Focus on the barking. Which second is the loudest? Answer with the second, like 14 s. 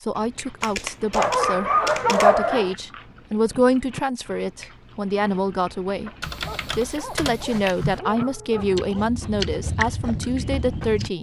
2 s.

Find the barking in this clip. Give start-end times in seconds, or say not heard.
1.1-2.8, 6.4-9.1.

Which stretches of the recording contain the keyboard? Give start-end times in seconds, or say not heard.
0.6-2.3, 6.2-8.0.